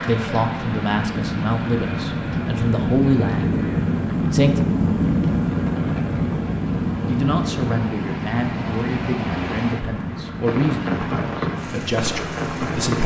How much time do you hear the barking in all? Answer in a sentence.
You can't hear the barking here.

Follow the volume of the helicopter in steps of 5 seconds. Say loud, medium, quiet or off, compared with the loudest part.
loud, loud, medium.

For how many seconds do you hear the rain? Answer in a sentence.
You can hear the rain for 13 seconds altogether.